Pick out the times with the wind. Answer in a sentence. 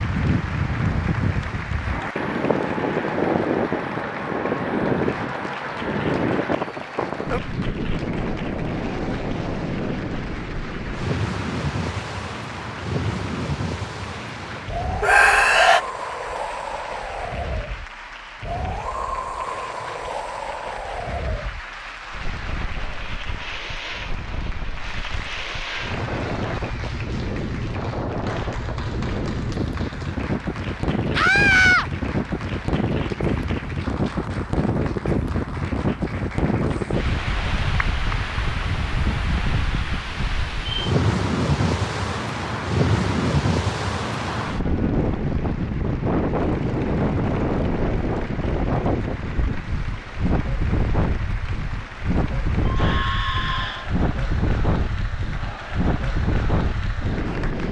The wind can be heard from 0.0 to 57.6 s.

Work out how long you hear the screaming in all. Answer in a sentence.
The screaming can be heard for 3 seconds in total.